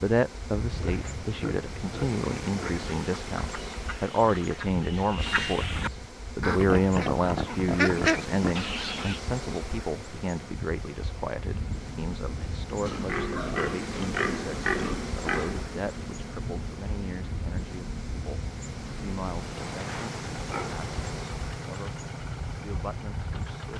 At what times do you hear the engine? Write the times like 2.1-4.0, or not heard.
11.5-23.7.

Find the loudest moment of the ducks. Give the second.
8 s.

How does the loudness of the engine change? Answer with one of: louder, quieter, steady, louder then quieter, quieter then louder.
steady.